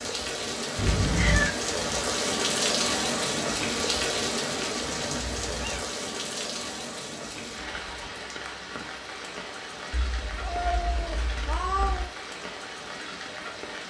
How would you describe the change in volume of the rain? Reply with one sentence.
The volume of the rain goes down.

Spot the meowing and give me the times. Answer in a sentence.
The meowing can be heard from 0.8 to 1.6 s, from 5.1 to 5.8 s and from 9.9 to 12.1 s.